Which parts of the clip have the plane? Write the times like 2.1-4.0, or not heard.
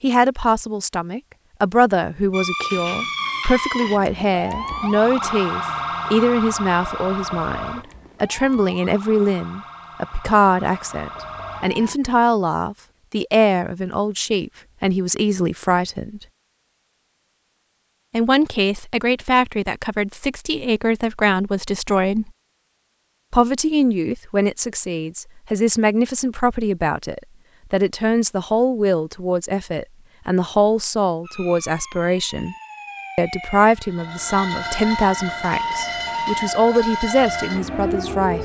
not heard.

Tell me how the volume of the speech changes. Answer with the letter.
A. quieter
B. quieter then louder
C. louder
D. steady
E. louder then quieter
D.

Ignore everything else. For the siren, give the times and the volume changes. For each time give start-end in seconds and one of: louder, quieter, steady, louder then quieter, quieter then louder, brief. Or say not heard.
2.3-11.9 quieter
31.2-38.4 louder.